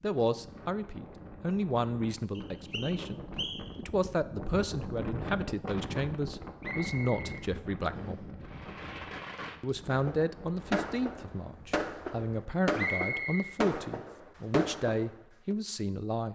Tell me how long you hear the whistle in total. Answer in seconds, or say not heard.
4 s.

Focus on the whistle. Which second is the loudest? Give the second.
13 s.